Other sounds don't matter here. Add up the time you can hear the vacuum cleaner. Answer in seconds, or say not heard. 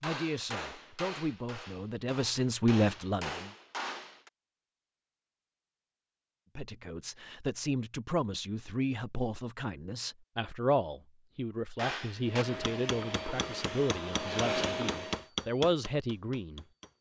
3 s.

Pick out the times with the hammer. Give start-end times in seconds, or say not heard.
0.0-4.3, 11.8-16.9.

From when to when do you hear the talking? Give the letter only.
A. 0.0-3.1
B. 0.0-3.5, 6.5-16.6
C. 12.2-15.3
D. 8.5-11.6
B.